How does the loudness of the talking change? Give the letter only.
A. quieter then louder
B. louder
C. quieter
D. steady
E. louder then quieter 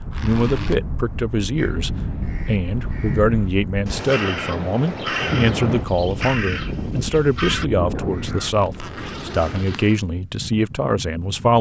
D.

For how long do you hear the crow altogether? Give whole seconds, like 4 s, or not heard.
7 s.